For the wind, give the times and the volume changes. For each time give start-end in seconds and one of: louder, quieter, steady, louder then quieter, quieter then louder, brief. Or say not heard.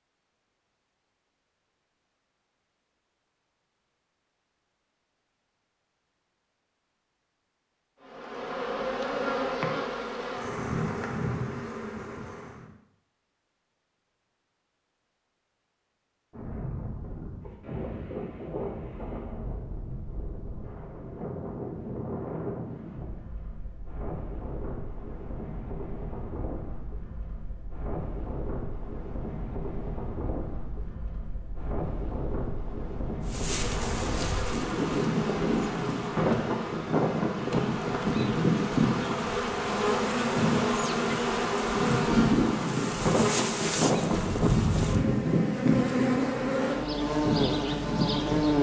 16.3-48.5 louder.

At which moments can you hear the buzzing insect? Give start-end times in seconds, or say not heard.
8.0-12.7, 33.2-48.5.